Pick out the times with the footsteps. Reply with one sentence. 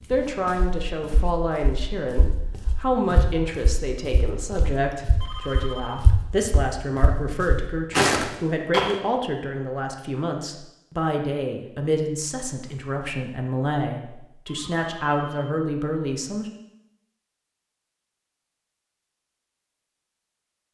The footsteps can be heard from 0.1 to 8.9 s.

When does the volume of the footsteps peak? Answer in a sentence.
The volume of the footsteps peaks at 8 seconds.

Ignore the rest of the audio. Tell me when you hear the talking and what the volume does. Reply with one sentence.
The talking can be heard from 0.1 to 16.5 s, at a steady volume.